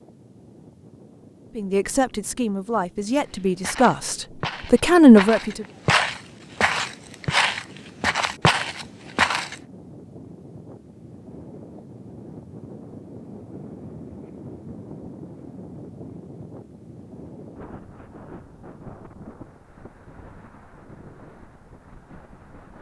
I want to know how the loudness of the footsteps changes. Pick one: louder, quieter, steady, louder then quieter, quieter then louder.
louder.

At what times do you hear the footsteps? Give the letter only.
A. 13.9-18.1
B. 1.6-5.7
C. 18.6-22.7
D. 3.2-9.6
D.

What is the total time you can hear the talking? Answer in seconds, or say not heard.
4 s.